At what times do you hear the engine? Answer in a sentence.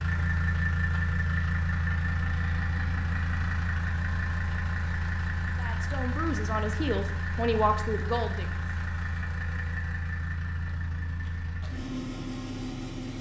The engine can be heard from 0.0 to 13.1 s.